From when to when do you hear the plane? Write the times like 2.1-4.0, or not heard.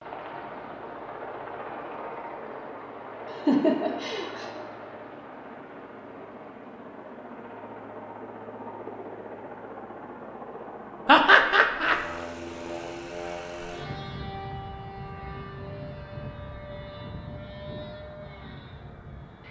0.0-19.4.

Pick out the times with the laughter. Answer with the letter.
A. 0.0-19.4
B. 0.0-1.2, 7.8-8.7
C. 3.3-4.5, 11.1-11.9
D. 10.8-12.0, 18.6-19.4
C.